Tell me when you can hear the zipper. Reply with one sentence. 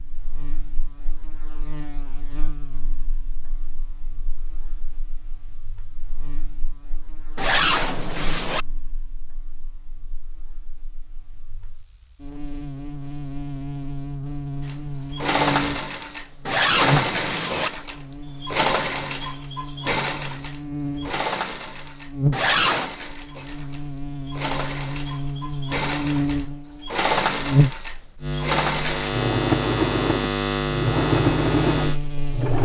You can hear the zipper from 7.3 to 8.7 s, from 16.4 to 17.7 s and from 22.3 to 22.9 s.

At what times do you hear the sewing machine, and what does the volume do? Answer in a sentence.
The sewing machine can be heard from 14.7 to 32.6 s, getting quieter then louder.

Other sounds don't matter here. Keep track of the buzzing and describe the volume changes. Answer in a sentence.
The loudness of the buzzing goes up.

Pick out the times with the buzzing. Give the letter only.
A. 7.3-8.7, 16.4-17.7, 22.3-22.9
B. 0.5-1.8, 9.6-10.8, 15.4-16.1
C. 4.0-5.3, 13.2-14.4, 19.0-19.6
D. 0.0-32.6
D.